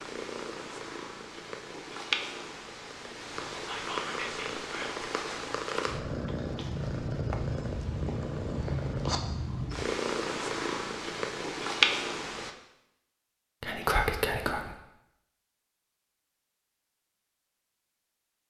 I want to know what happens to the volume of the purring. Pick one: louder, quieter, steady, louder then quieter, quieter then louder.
louder.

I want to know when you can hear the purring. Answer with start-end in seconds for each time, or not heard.
0.0-12.6.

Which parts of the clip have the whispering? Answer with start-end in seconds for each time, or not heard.
3.6-5.0, 13.6-14.8.